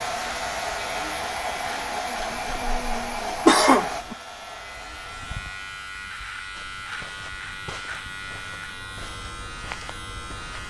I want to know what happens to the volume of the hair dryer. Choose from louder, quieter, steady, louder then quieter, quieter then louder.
quieter.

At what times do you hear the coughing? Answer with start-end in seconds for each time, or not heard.
2.2-4.2.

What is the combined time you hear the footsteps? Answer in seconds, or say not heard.
4 s.